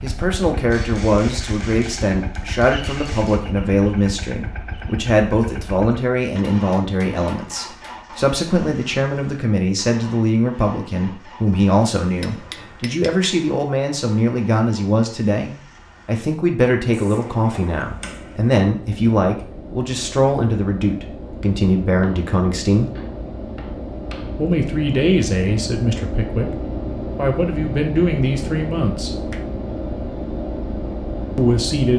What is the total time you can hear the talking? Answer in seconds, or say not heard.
28 s.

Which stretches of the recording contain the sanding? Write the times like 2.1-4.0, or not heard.
not heard.